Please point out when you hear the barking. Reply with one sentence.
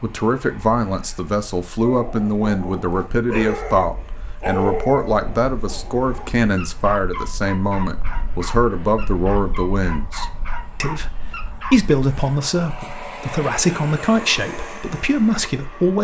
You can hear the barking from 1.8 to 11.9 s.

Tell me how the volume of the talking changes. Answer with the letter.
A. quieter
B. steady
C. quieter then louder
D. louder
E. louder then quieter
B.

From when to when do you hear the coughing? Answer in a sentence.
You can't hear the coughing here.